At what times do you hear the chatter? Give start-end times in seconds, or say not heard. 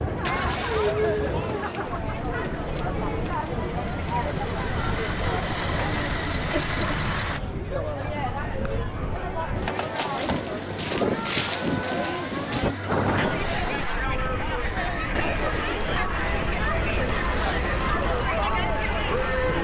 0.0-19.5.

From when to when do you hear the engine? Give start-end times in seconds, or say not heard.
0.1-7.4, 10.2-19.5.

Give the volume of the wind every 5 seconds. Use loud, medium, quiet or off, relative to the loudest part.
medium, medium, loud, medium.